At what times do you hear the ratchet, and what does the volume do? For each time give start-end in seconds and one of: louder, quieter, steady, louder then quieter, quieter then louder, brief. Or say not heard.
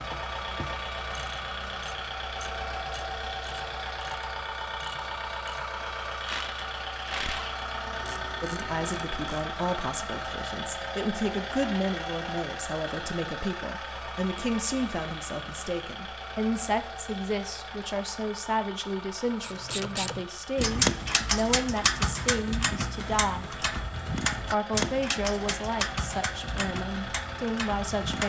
0.0-9.5 louder then quieter
19.4-28.2 quieter.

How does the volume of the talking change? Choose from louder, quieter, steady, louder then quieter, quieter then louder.
steady.